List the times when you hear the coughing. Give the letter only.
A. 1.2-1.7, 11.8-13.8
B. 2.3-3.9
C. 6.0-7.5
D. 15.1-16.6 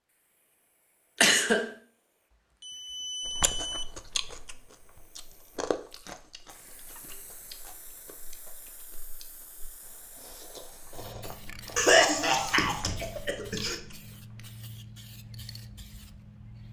A.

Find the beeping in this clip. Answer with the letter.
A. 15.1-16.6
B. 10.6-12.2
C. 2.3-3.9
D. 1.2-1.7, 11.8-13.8
C.